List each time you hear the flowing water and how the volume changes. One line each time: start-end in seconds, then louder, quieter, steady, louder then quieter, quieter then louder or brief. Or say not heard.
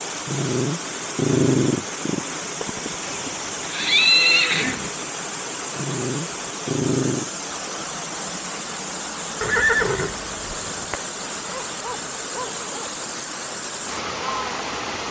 0.0-15.0 steady.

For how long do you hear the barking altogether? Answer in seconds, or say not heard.
6 s.